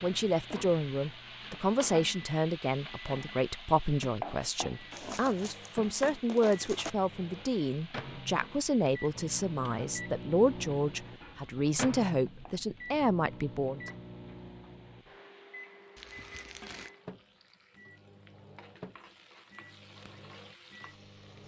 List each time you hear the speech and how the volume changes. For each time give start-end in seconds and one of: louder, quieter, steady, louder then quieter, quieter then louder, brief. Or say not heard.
0.0-13.8 steady.